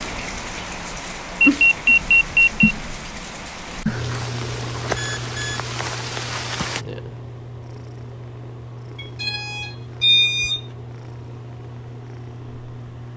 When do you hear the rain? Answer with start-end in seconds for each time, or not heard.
0.0-6.8.